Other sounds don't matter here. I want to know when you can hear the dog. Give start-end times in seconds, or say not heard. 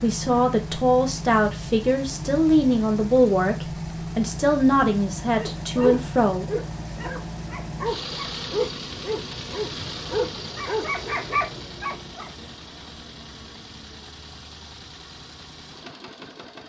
5.3-12.3.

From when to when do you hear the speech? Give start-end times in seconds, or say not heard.
0.0-6.5.